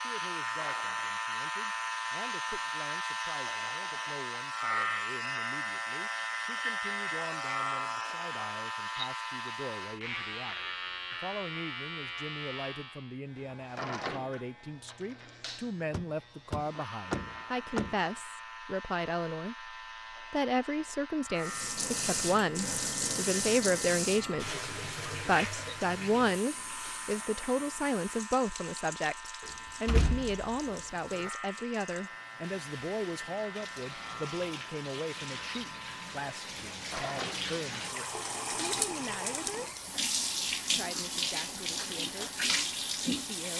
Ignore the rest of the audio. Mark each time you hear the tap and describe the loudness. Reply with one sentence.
You can hear the tap from 21.4 to 43.5 s, getting quieter then louder.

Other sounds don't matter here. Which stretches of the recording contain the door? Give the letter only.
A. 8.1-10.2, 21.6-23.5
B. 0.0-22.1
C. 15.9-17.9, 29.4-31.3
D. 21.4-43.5
C.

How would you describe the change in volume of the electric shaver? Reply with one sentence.
The volume of the electric shaver goes down.